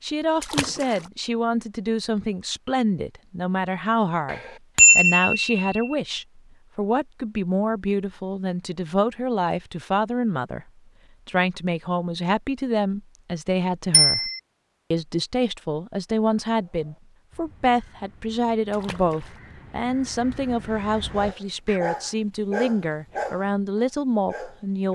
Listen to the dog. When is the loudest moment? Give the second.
23 s.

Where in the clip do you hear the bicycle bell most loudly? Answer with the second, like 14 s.
5 s.